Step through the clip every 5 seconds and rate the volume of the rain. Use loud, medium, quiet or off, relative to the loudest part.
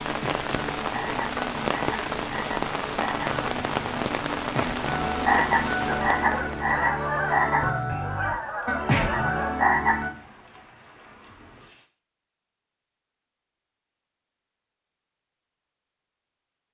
loud, medium, quiet, off.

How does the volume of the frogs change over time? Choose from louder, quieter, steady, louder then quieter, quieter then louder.
louder.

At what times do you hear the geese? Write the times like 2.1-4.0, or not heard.
5.8-9.7.